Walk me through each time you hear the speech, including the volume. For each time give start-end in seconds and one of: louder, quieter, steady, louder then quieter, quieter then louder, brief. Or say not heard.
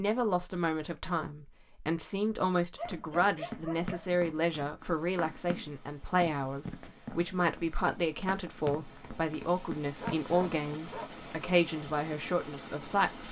0.0-13.2 steady.